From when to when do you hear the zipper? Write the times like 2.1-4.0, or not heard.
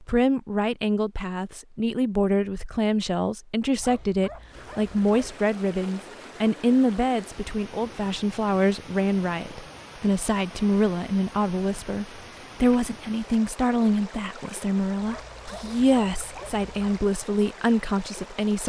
not heard.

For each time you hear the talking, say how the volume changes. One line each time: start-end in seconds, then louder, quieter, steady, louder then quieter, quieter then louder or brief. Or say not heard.
0.0-18.6 steady.